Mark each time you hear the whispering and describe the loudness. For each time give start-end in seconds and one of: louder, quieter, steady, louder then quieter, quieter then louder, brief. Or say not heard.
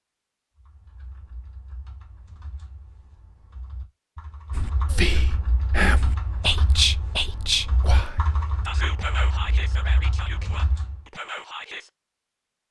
4.5-11.9 quieter.